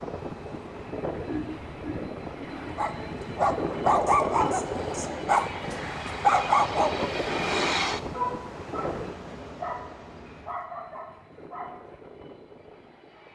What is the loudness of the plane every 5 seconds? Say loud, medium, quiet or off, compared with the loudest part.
loud, loud, quiet.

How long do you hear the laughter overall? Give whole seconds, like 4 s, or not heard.
2 s.